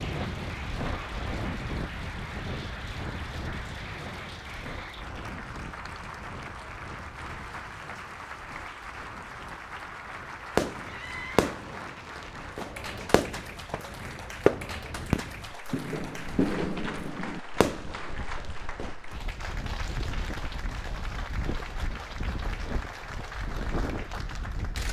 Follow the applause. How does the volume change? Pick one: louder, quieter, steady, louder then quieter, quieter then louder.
steady.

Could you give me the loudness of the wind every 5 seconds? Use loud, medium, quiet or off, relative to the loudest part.
loud, medium, medium, medium, loud.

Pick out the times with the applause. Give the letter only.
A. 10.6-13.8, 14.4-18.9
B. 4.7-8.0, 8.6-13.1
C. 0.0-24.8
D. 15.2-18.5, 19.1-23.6
C.